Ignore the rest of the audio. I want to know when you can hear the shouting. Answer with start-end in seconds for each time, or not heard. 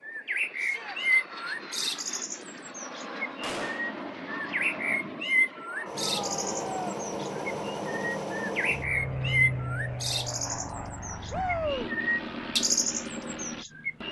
0.6-1.0, 6.0-6.8, 11.3-11.9.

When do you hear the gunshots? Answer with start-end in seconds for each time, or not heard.
3.4-3.9.